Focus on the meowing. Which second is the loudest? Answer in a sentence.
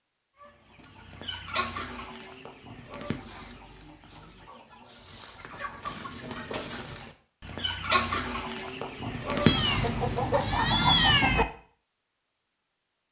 The loudest moment of the meowing is at 11 seconds.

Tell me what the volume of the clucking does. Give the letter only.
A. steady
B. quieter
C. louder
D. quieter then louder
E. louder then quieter
D.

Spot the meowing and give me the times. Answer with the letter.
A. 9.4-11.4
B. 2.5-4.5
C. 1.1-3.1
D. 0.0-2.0
A.